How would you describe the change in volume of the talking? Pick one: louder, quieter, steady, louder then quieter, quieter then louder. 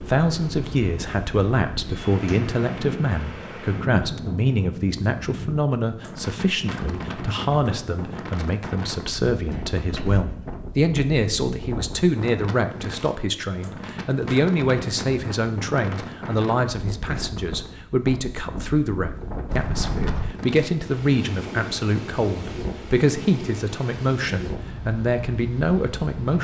steady.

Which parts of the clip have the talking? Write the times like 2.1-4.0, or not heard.
0.0-26.3.